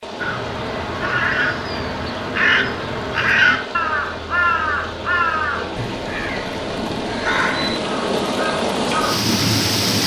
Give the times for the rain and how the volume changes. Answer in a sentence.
You can hear the rain from 0.0 to 10.0 s, getting louder.